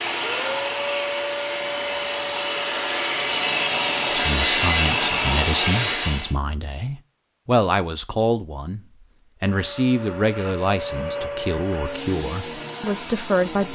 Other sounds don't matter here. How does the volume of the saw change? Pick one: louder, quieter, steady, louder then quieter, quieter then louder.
louder.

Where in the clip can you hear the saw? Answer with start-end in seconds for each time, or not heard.
0.0-6.3.